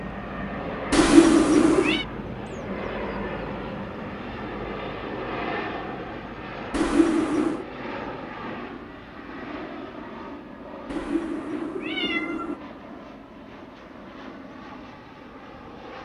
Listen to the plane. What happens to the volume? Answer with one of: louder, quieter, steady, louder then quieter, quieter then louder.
quieter.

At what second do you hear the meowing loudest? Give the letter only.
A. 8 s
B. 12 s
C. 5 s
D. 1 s
D.